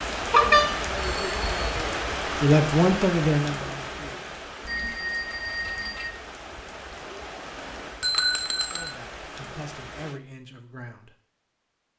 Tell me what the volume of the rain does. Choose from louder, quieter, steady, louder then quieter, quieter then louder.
quieter.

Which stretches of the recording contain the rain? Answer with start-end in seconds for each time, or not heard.
0.0-10.2.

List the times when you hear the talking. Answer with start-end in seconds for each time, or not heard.
2.4-4.2, 8.6-11.2.